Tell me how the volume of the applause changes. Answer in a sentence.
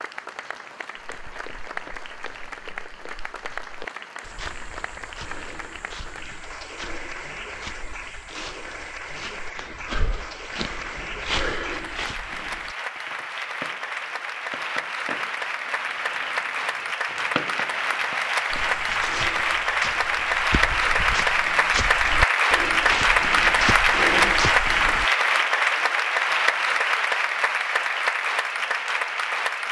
The volume of the applause goes up.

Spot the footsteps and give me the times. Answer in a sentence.
The footsteps can be heard from 0.9 to 12.8 s and from 18.5 to 25.1 s.